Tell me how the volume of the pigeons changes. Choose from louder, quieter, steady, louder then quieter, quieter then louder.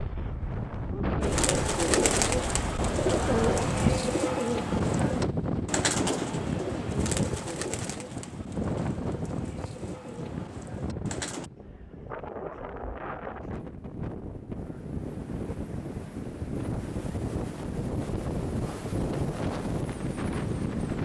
quieter.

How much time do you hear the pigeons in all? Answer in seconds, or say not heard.
10 s.